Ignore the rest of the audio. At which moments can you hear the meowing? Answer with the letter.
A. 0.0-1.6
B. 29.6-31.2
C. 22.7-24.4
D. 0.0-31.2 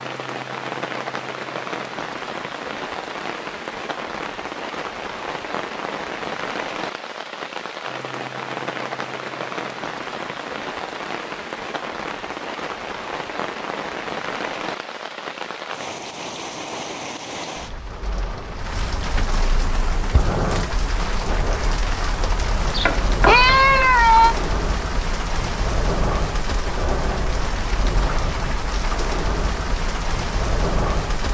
C.